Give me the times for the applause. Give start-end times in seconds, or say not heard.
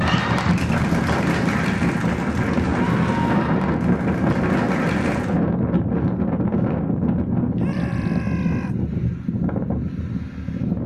0.0-5.4.